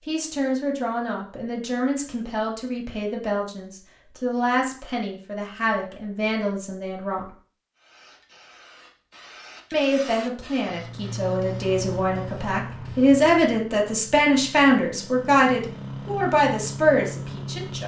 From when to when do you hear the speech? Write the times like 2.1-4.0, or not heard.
0.1-7.2, 9.7-17.8.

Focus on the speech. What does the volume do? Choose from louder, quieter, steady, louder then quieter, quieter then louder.
louder.